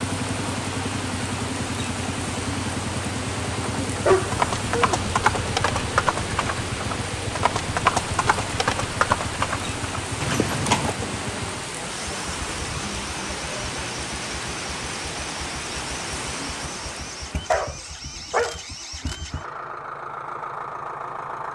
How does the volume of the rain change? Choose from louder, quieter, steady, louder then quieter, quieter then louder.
steady.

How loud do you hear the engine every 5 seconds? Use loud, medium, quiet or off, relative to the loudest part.
loud, loud, medium, medium, loud.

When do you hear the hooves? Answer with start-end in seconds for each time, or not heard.
4.0-10.9.